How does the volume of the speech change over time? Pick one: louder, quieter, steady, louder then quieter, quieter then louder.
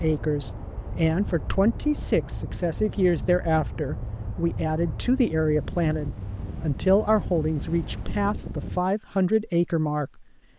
steady.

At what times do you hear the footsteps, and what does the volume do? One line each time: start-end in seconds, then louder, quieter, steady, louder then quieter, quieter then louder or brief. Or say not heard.
not heard.